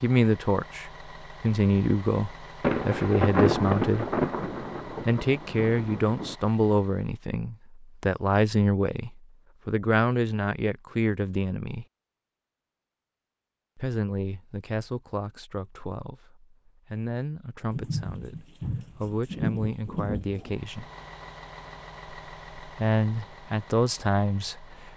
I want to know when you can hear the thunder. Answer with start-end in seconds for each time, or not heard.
2.6-6.3, 17.7-20.6.